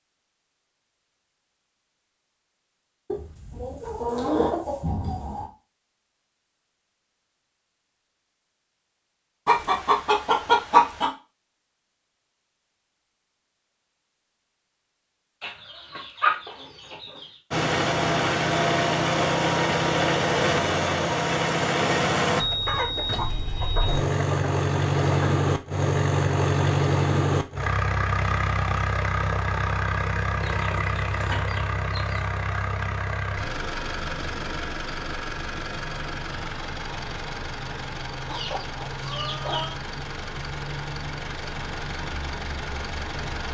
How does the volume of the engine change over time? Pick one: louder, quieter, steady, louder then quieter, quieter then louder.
quieter.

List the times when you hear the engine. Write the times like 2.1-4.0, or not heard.
17.5-43.4.